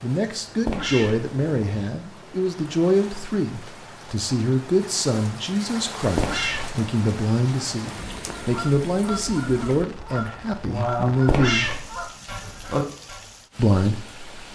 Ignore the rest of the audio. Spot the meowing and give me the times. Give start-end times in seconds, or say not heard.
0.7-1.9, 6.2-6.8, 11.2-11.8.